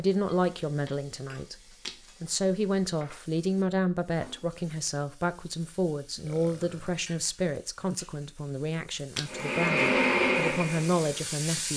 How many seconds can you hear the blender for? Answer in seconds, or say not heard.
2 s.